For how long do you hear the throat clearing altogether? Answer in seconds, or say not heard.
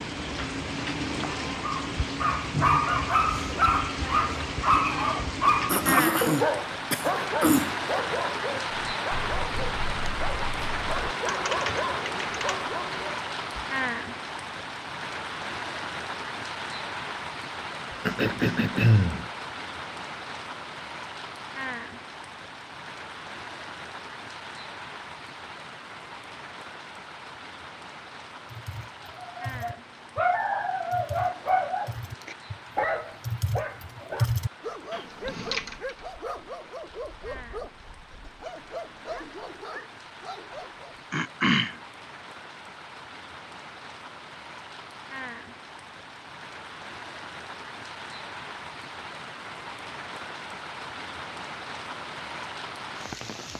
4 s.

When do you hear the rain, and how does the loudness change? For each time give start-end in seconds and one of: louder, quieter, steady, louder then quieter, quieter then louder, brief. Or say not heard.
0.0-53.5 quieter then louder.